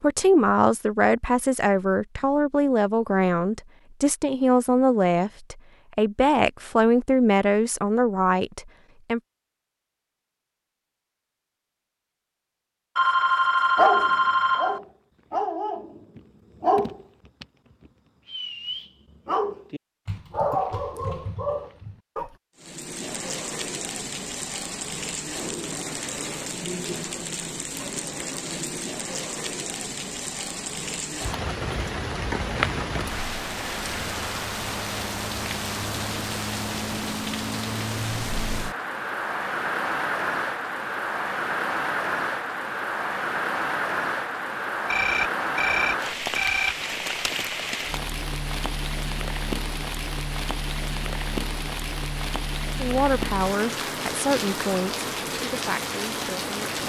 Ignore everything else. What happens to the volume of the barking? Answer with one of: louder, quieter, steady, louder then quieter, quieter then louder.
quieter then louder.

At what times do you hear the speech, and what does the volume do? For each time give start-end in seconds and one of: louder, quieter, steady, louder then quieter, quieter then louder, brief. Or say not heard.
0.0-9.2 steady
52.8-56.8 quieter.